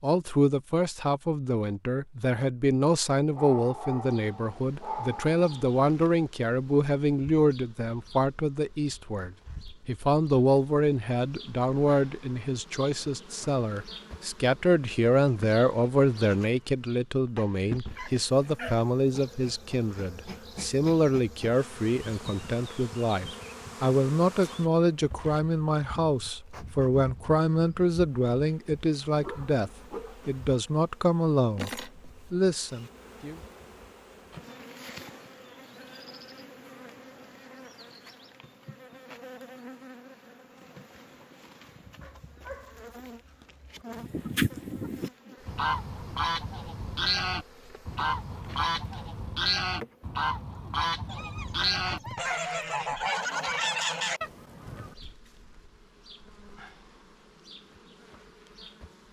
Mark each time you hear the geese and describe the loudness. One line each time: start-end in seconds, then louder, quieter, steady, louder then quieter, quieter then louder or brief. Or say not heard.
43.9-55.0 steady.